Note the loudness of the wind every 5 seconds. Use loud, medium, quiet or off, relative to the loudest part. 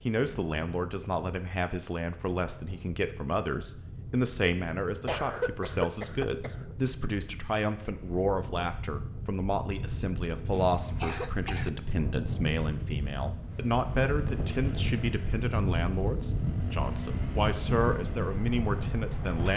quiet, medium, loud, loud.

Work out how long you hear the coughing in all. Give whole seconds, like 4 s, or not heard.
3 s.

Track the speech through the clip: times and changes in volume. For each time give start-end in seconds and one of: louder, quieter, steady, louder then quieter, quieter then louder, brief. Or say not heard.
0.1-19.5 steady.